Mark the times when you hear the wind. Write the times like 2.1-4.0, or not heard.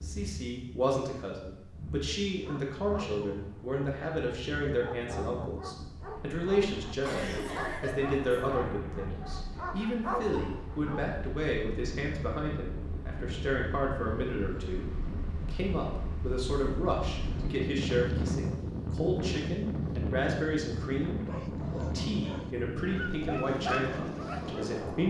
0.0-25.0.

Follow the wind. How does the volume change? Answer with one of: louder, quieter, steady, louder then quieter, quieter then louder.
louder.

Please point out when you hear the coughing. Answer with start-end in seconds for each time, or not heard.
7.0-8.6.